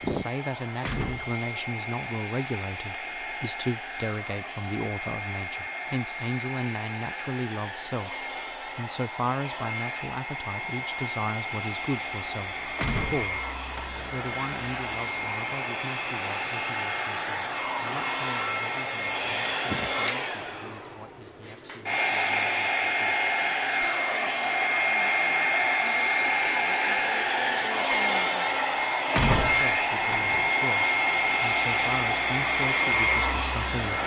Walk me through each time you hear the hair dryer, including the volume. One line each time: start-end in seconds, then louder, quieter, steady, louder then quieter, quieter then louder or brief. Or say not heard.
0.0-34.0 louder.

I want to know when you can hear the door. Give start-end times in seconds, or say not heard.
0.8-1.4, 12.8-14.1, 29.1-30.5.